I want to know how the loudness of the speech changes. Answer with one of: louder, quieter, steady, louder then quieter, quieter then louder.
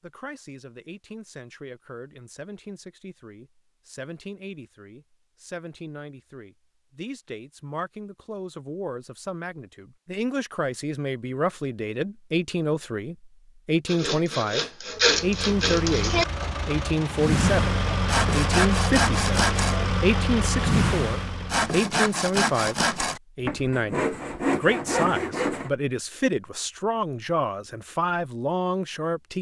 louder.